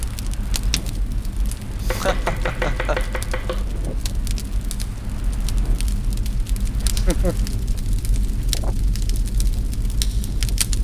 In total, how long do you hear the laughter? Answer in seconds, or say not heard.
2 s.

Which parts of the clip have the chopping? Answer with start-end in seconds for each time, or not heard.
1.9-3.6.